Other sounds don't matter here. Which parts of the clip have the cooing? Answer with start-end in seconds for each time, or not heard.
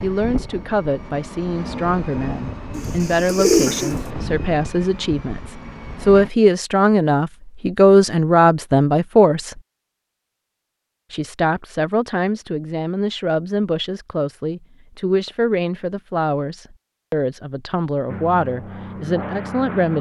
2.7-4.1.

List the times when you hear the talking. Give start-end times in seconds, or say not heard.
0.0-9.6, 11.1-19.9.